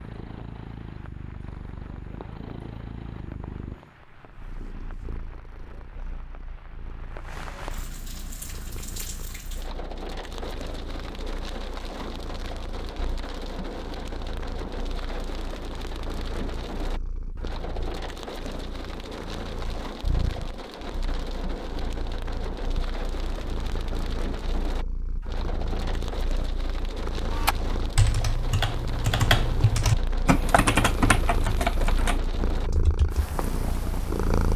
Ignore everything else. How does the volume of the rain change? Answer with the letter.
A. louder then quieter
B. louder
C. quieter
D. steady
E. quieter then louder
B.